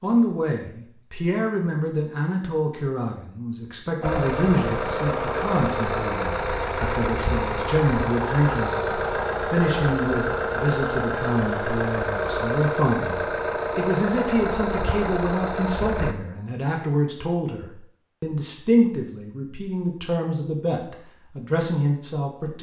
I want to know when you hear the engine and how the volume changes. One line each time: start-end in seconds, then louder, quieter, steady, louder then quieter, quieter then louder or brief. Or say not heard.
4.0-16.1 steady.